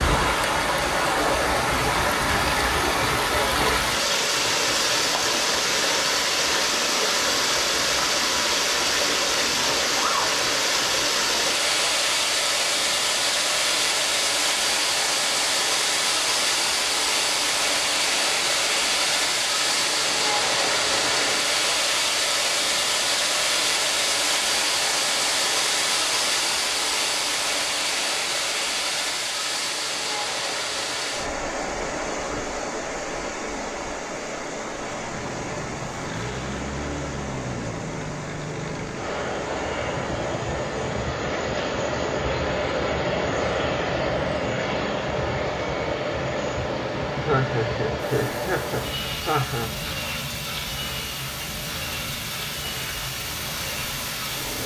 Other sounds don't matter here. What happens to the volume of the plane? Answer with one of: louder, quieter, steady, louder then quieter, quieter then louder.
louder then quieter.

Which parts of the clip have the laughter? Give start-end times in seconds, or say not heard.
47.1-49.7.